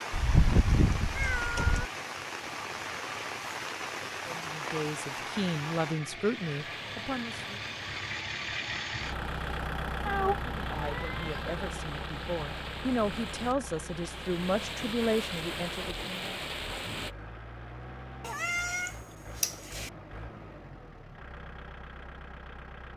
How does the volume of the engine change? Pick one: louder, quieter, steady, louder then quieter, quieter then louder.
louder then quieter.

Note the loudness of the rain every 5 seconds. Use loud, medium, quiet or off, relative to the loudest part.
loud, medium, medium, loud, off.